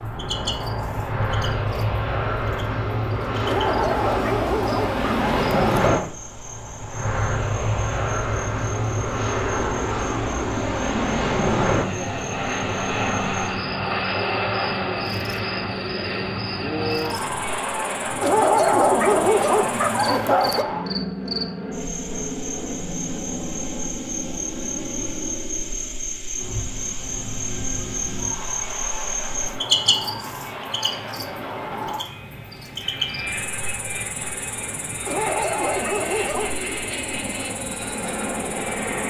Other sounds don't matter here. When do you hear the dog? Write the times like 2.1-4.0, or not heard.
3.5-6.1, 18.2-20.6, 35.0-36.6.